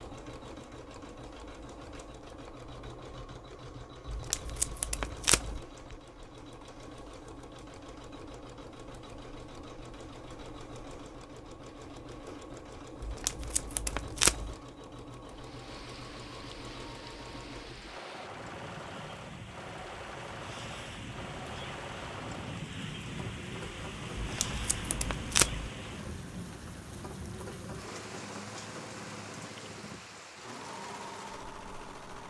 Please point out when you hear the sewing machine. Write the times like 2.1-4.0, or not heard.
0.0-32.2.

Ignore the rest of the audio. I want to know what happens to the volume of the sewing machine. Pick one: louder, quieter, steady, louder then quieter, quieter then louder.
steady.